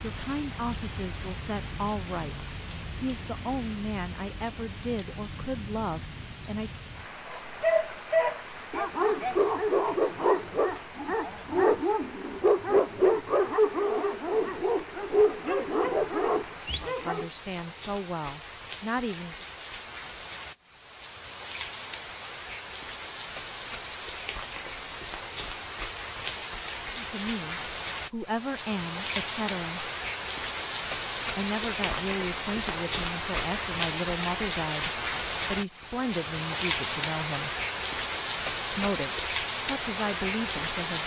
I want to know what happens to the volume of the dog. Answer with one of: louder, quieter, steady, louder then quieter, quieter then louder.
steady.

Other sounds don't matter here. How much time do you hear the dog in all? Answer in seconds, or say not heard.
10 s.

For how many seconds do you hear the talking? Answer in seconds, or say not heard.
21 s.